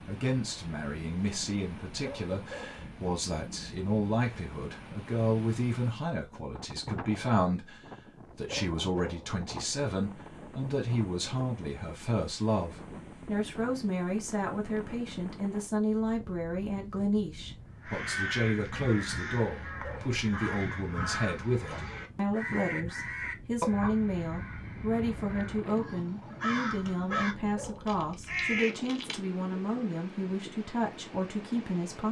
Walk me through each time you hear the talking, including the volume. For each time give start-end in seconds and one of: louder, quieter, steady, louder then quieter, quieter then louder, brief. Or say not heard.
0.0-32.0 steady.